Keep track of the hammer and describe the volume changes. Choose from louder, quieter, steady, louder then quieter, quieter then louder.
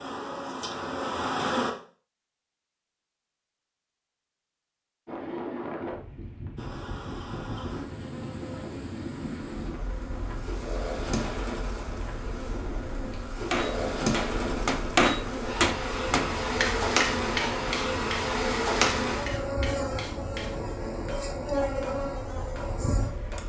quieter.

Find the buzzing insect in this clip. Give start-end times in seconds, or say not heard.
0.0-1.8, 6.5-23.4.